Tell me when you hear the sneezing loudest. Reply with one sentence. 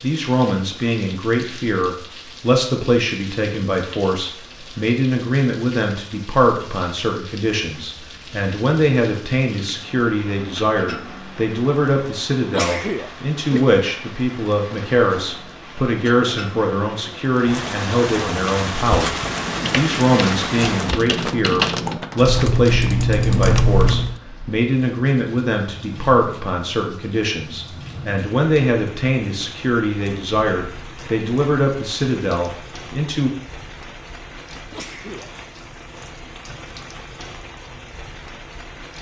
The loudest moment of the sneezing is at 13 seconds.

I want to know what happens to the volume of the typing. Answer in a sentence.
The volume of the typing goes up.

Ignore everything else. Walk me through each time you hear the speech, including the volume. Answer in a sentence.
The speech can be heard from 0.0 to 33.3 s, at a steady volume.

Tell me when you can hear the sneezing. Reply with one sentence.
You can hear the sneezing from 12.5 to 13.6 s and from 34.7 to 35.3 s.